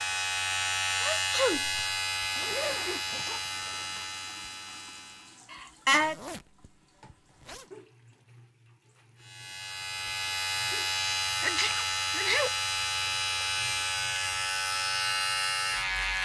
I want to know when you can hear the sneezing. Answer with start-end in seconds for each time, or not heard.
1.0-1.9, 5.5-6.2, 11.4-12.5.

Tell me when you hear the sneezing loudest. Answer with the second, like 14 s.
6 s.